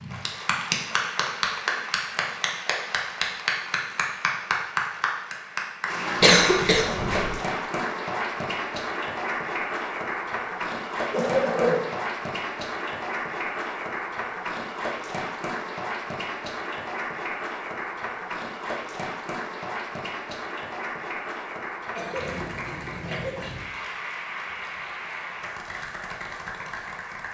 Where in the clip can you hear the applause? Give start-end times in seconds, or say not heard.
0.0-27.2.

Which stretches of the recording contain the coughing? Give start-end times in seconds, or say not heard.
6.2-7.4, 11.1-11.8, 21.9-22.4, 23.1-23.6.